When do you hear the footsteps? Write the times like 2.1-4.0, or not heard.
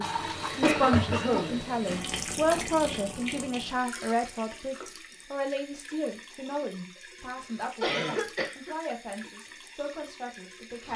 not heard.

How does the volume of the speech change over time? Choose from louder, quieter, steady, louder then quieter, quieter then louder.
quieter.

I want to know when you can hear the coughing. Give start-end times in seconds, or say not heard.
0.6-1.6, 7.8-8.8.